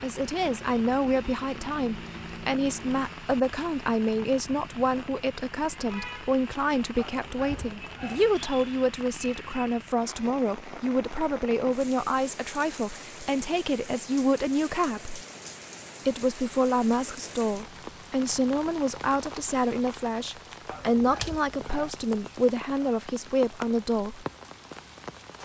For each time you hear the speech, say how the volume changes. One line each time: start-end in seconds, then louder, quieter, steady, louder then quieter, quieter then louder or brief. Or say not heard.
0.0-15.2 steady
16.1-24.2 steady.